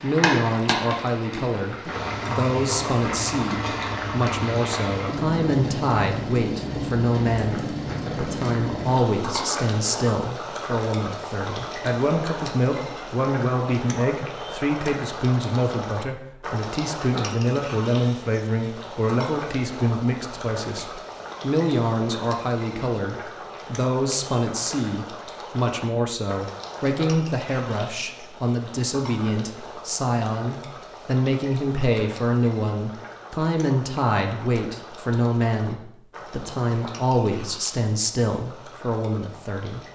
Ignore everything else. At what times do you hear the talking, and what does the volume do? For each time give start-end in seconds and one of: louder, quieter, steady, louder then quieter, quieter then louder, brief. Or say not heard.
0.0-39.8 steady.